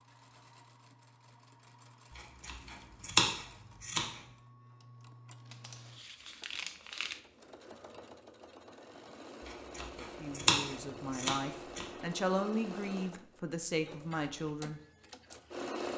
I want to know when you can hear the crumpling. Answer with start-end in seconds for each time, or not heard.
5.5-7.2.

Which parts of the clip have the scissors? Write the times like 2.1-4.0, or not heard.
2.1-4.2, 9.4-11.8.